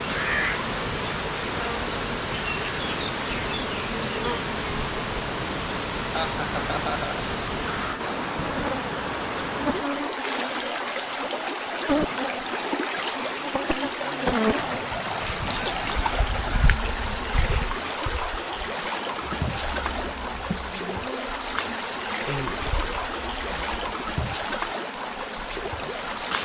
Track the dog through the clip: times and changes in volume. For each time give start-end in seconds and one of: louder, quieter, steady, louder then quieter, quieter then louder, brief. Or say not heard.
not heard.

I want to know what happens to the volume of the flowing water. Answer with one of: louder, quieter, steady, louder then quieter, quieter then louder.
steady.